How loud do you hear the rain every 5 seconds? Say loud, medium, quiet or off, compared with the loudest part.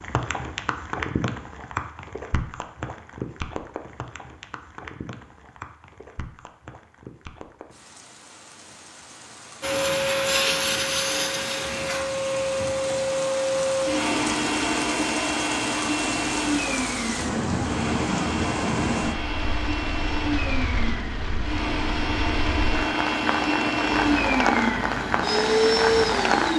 medium, quiet, medium, loud, loud, loud.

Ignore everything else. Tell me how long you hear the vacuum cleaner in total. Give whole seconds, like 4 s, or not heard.
17 s.